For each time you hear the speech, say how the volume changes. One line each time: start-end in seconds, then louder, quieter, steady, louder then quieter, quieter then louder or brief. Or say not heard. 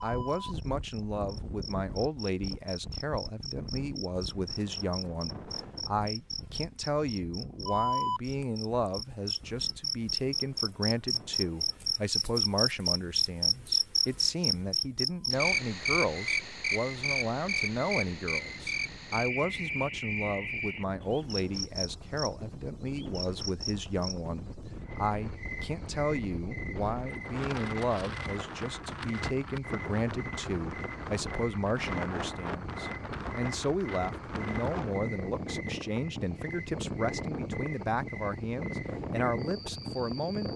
0.0-40.5 steady.